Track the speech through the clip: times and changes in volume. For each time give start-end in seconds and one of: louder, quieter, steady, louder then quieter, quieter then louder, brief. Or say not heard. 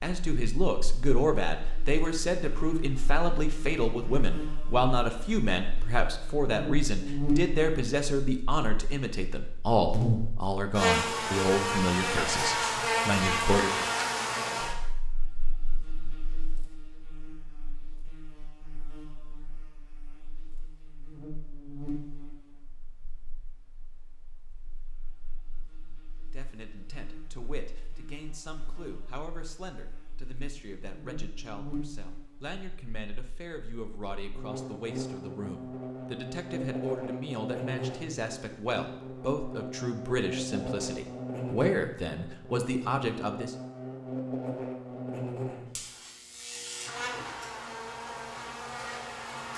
0.0-13.8 steady
26.3-43.5 louder.